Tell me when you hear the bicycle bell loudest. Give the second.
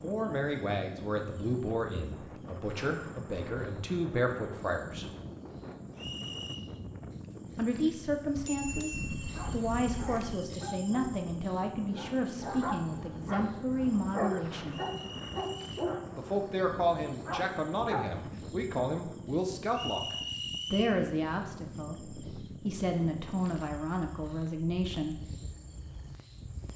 9 s.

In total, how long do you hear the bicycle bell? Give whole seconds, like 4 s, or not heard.
2 s.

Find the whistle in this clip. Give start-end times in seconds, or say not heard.
6.0-6.7, 14.7-15.9, 19.7-20.9.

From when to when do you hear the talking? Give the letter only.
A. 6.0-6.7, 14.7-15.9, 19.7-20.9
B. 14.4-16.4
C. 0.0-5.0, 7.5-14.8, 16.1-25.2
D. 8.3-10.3
C.